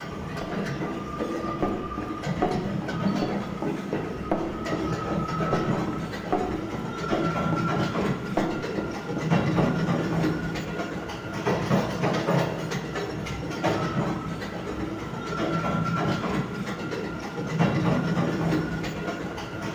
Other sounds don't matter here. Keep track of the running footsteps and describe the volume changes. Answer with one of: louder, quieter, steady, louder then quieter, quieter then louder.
steady.